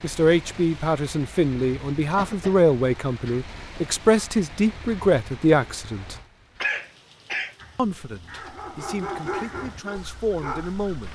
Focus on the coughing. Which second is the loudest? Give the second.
7 s.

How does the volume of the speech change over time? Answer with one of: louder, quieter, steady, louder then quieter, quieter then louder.
quieter.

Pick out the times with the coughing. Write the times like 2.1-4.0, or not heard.
2.1-2.7, 6.6-7.5.